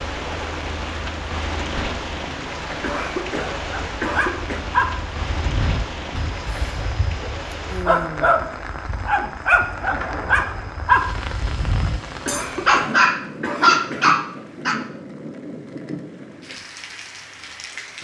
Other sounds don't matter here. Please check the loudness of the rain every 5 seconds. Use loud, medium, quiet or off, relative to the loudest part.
loud, loud, loud, medium.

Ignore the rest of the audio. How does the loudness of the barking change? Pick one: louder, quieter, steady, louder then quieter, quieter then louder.
louder.